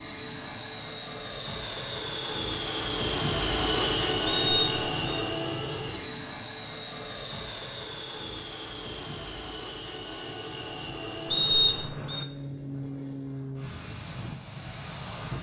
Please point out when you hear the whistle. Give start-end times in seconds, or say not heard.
4.2-5.2, 11.3-12.2.